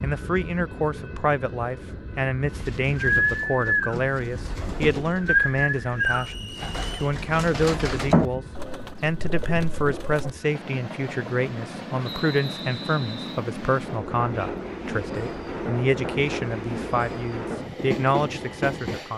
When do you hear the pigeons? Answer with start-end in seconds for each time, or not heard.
2.5-10.3.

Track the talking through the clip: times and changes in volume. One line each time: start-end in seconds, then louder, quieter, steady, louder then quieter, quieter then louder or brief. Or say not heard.
0.0-19.1 steady.